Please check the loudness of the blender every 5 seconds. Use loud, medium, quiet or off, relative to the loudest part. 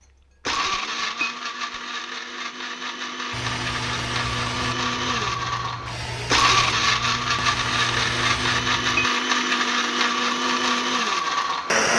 medium, loud, loud.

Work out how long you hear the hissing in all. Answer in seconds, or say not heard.
6 s.